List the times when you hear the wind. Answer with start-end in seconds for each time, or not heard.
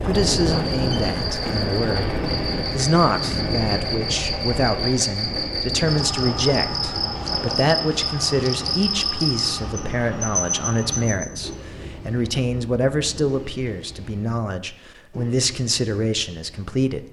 0.0-13.4.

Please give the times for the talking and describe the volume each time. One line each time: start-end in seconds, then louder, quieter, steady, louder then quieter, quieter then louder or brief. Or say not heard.
0.1-17.0 steady.